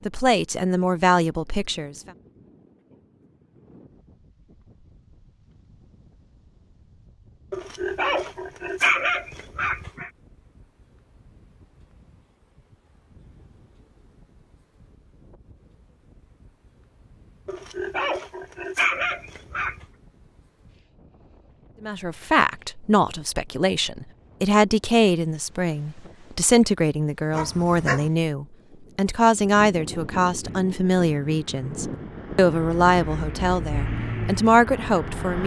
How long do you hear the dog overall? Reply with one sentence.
The dog can be heard for 6 seconds in total.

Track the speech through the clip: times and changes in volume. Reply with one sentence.
The speech can be heard briefly from 0.1 to 2.0 s; and from 21.8 to 35.4 s, at a steady volume.